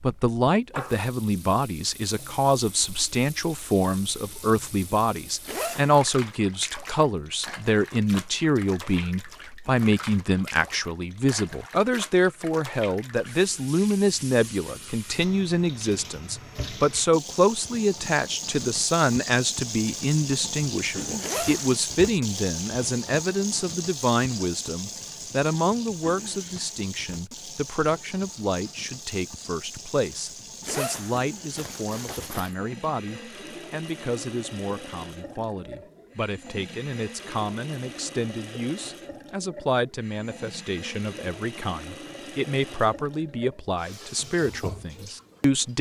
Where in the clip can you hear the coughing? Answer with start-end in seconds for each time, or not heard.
not heard.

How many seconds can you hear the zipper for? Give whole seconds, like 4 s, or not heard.
3 s.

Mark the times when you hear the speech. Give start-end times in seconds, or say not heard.
0.0-45.7.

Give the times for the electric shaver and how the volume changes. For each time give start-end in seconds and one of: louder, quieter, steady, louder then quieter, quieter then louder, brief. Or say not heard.
not heard.